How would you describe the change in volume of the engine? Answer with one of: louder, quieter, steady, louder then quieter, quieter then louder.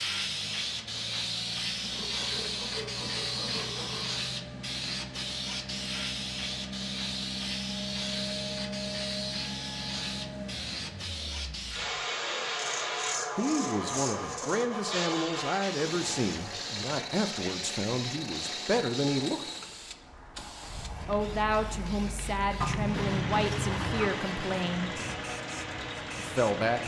louder.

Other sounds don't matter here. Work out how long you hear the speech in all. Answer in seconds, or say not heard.
11 s.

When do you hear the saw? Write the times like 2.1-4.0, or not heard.
1.8-4.2, 12.6-14.7, 22.6-24.2.